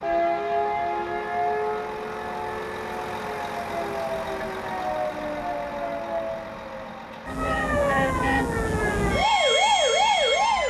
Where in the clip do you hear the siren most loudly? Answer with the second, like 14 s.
10 s.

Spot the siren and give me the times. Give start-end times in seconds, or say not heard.
0.0-10.6.